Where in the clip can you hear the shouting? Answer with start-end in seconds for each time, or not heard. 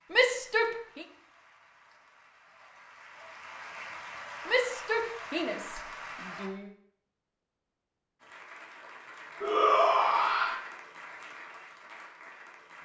0.1-1.1, 4.5-6.7, 9.4-10.6.